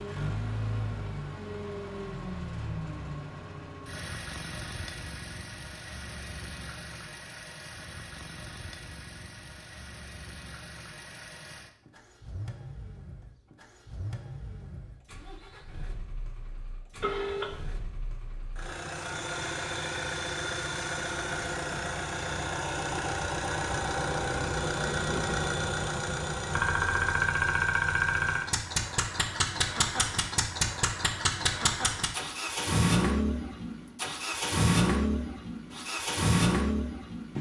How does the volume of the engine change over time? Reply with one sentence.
The volume of the engine goes down, then up.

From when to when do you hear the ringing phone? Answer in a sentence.
You can hear the ringing phone from 17.0 to 17.8 s.